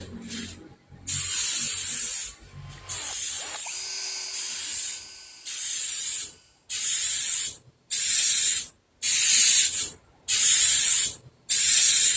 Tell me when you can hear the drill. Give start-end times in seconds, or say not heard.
2.5-6.7.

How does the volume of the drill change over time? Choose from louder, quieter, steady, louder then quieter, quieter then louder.
louder then quieter.